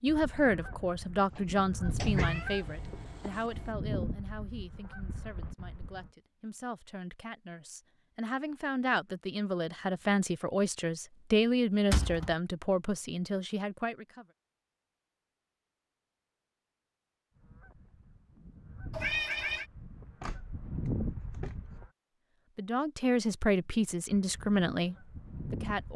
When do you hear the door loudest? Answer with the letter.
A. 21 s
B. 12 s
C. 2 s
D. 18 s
B.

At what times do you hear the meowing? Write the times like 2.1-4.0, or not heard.
2.0-3.8, 18.9-19.6.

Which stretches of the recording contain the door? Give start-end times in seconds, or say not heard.
1.4-3.0, 11.9-12.3, 20.2-21.8.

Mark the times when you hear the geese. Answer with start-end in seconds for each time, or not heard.
0.1-6.1, 17.4-21.9, 24.1-25.9.